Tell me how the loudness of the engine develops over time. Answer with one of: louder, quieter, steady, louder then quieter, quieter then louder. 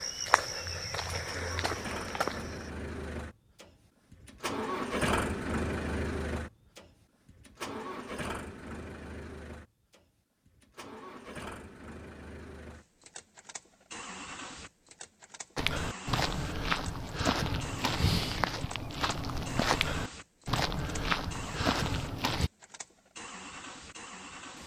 quieter.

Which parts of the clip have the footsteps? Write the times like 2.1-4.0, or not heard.
0.0-2.7, 15.6-22.5.